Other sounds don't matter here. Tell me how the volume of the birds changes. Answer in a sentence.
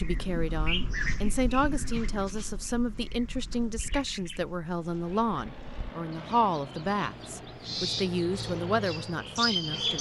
The loudness of the birds goes down, then up.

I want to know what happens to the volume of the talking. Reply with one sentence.
The volume of the talking stays about the same.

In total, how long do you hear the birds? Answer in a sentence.
You can hear the birds for 10 seconds altogether.